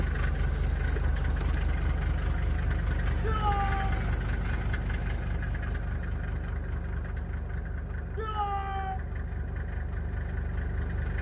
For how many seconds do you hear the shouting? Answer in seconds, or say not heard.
2 s.